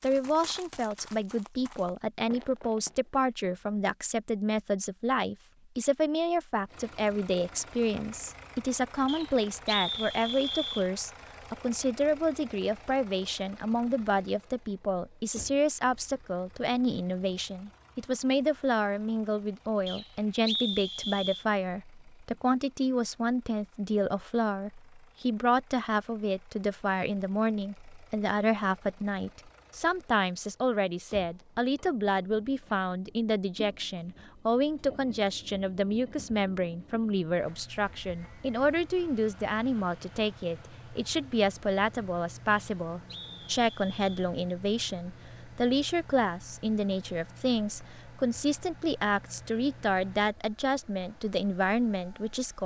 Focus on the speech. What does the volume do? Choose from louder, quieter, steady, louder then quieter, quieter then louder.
steady.